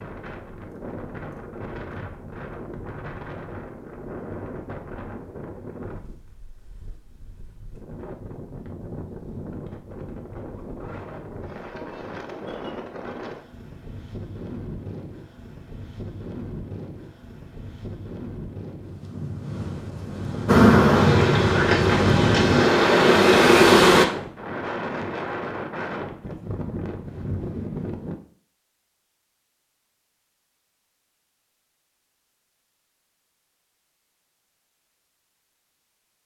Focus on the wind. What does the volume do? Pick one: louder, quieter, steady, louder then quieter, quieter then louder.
louder.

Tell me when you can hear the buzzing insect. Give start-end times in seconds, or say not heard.
20.4-24.1.